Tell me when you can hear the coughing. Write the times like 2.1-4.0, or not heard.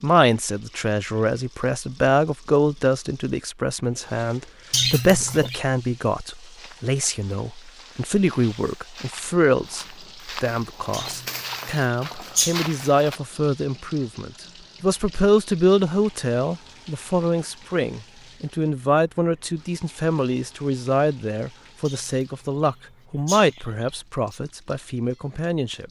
4.7-5.6, 10.9-12.6, 21.9-24.4.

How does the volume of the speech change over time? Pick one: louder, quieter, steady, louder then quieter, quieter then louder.
steady.